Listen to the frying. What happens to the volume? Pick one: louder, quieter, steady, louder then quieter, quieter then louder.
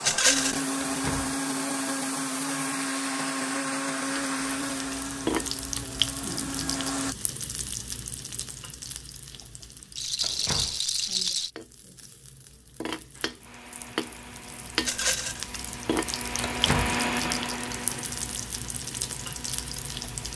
quieter then louder.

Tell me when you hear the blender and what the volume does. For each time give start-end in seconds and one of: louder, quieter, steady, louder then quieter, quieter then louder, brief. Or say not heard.
0.0-7.2 quieter
13.1-20.3 louder then quieter.